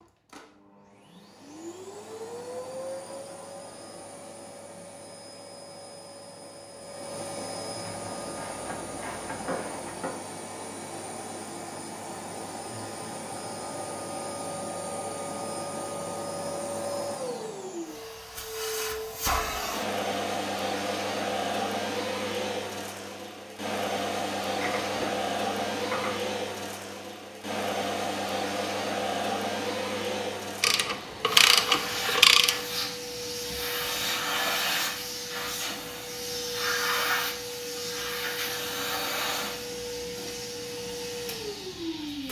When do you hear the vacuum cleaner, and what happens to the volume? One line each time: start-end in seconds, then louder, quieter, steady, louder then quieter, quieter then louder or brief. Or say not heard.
0.0-42.2 louder.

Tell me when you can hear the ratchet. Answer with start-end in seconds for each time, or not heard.
7.8-10.2, 24.6-26.2, 30.6-32.6.